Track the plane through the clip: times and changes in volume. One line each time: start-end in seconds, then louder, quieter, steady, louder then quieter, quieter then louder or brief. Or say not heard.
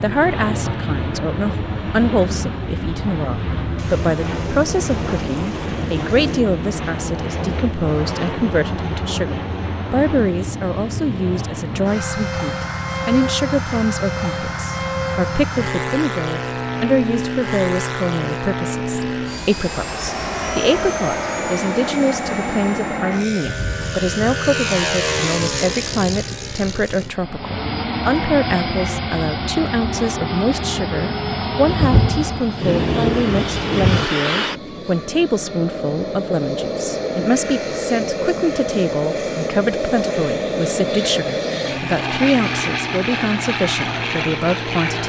0.0-45.0 steady.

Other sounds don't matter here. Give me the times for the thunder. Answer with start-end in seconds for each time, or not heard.
3.8-6.4, 23.4-26.8, 31.6-34.0.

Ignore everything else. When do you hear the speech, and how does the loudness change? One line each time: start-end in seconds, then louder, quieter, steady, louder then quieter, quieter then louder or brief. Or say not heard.
0.0-45.0 steady.